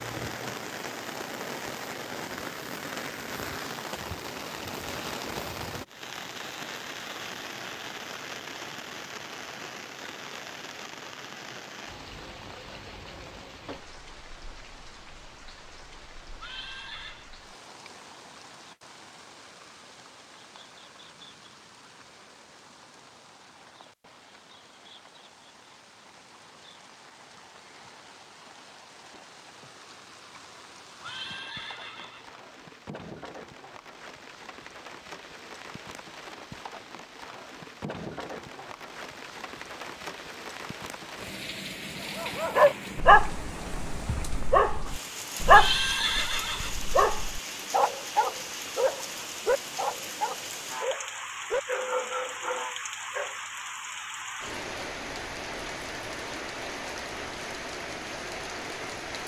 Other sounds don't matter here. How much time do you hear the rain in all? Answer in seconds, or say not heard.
59 s.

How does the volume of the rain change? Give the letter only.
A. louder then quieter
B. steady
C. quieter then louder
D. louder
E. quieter
C.